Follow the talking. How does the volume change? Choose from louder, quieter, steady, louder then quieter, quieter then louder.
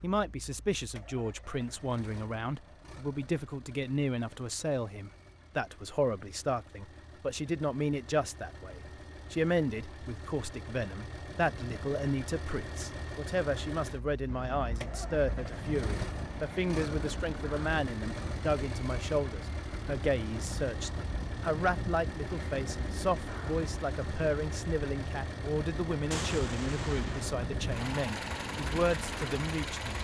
steady.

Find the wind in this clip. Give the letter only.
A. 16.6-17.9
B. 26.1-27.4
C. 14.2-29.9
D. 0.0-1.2
C.